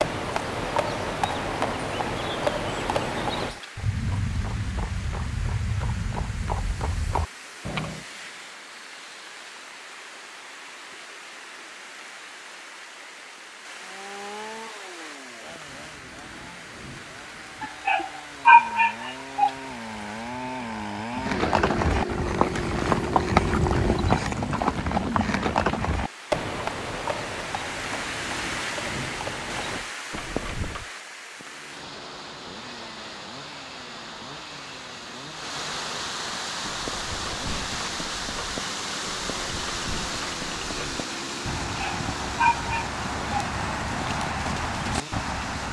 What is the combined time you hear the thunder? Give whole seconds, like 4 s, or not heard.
4 s.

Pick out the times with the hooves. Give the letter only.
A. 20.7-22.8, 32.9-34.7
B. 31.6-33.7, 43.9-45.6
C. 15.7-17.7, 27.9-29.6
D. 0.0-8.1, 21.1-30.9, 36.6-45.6
D.